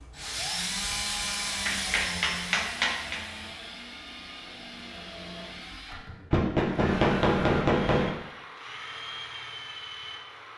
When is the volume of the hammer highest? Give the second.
7 s.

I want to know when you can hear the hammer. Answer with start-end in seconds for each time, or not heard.
1.6-3.2, 6.3-8.1.